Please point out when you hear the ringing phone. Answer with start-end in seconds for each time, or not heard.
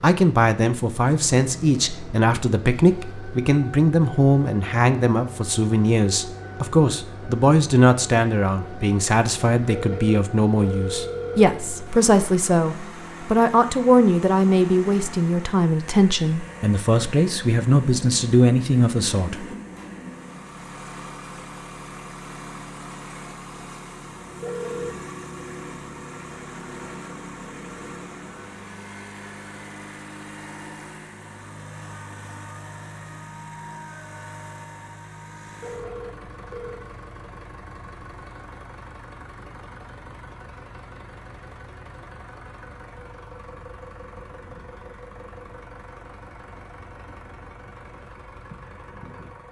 9.7-11.5, 24.4-24.9, 35.6-36.9.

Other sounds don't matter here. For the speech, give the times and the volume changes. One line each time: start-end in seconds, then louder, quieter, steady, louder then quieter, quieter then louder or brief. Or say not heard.
0.0-19.4 steady.